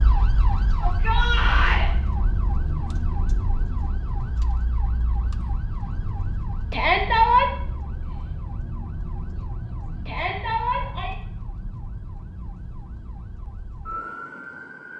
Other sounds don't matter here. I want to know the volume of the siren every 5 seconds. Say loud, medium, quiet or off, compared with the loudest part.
loud, loud, medium.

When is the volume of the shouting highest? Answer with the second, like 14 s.
7 s.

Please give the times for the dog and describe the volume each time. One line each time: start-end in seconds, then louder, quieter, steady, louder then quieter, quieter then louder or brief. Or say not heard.
not heard.